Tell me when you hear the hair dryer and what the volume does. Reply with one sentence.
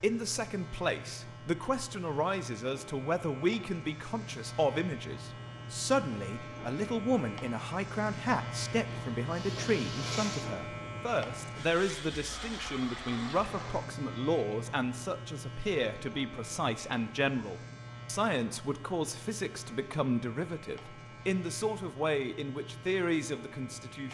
The hair dryer can't be heard in this clip.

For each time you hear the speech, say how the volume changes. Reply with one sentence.
You can hear the speech from 0.0 to 24.0 s, at a steady volume.